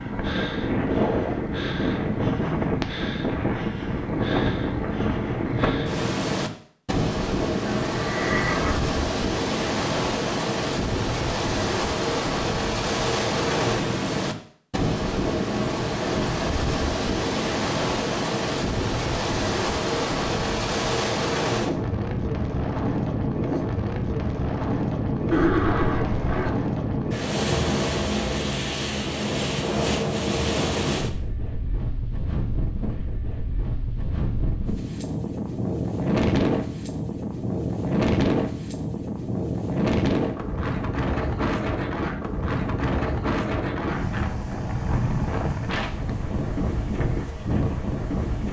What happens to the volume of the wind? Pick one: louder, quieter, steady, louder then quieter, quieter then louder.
steady.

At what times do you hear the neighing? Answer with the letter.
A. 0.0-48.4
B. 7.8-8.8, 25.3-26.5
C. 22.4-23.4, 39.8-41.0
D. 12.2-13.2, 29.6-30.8
B.